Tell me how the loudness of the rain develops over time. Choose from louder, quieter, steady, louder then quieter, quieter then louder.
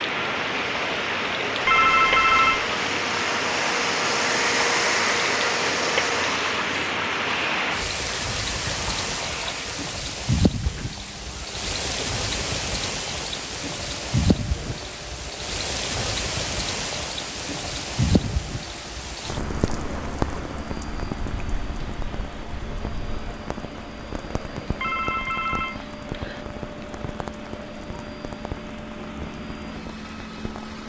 quieter.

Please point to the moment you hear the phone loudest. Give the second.
2 s.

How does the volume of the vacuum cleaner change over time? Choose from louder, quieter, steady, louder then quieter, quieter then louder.
quieter.